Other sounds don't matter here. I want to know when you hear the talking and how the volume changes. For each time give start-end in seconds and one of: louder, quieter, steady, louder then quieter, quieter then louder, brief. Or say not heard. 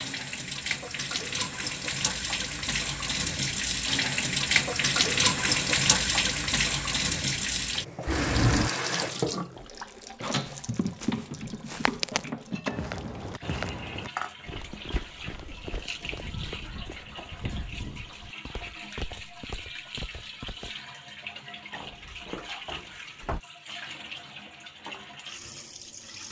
not heard.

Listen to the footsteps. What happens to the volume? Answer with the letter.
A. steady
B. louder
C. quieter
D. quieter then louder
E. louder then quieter
C.